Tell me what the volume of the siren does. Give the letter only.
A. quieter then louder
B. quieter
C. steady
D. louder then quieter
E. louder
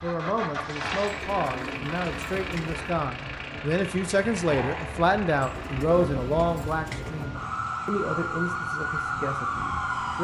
E.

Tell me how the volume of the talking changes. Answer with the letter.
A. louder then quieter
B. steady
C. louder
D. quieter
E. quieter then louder
A.